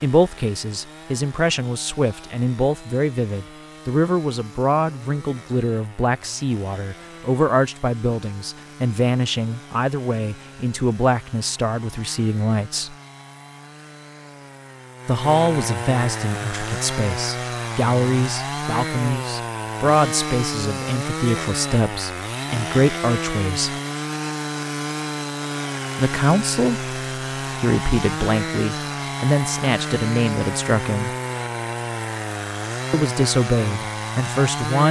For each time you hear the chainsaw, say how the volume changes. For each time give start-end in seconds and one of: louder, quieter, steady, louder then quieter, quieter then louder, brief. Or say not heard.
0.0-34.8 louder.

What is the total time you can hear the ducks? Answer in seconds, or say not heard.
not heard.